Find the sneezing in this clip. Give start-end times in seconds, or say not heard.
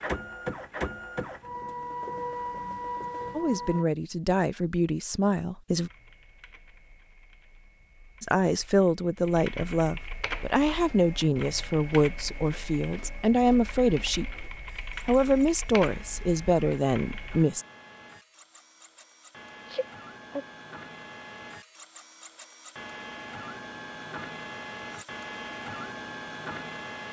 19.6-20.4.